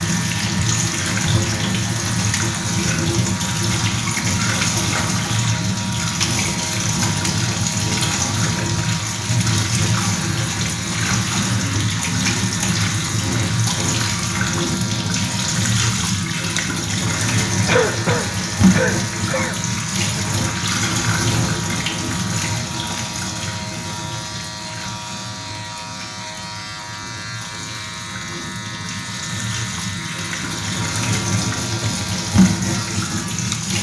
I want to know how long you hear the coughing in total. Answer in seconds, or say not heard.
2 s.